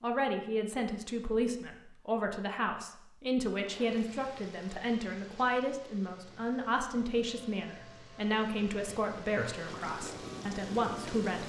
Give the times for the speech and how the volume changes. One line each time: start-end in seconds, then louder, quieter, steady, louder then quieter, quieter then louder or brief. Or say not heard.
0.0-11.4 steady.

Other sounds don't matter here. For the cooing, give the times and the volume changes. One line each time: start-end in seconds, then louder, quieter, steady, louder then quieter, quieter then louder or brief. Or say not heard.
not heard.